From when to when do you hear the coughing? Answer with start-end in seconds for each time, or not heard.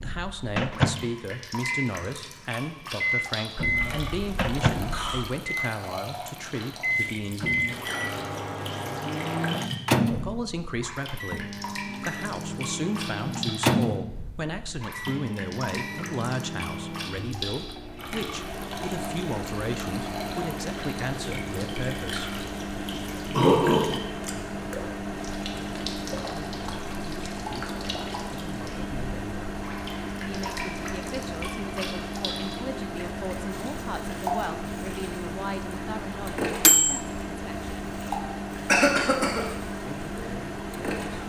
3.6-5.2, 23.3-24.0, 38.6-39.5.